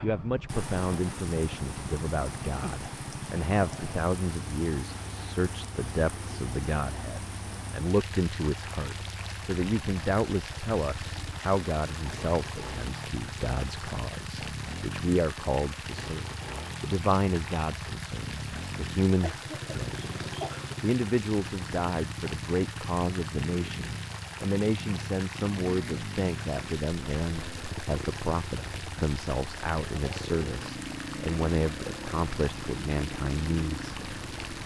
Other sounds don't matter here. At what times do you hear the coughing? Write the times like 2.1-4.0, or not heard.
19.2-20.8.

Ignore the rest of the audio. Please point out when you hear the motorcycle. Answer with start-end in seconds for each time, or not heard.
0.0-34.6.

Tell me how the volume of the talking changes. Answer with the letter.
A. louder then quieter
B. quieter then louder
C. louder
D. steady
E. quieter
D.